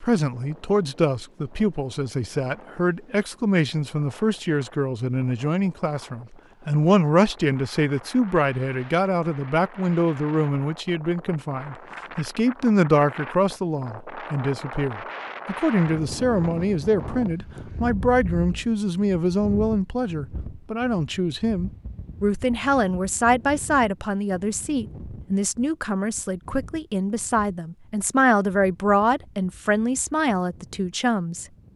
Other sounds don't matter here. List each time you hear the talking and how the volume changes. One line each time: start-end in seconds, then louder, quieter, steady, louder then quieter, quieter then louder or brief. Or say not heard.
0.0-31.7 steady.